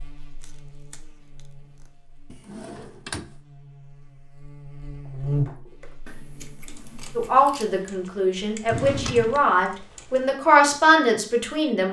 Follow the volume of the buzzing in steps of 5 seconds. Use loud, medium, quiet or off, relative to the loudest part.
quiet, loud, off.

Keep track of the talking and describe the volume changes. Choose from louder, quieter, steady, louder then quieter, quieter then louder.
louder.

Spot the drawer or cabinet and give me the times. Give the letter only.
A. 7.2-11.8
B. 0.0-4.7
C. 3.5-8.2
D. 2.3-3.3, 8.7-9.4
D.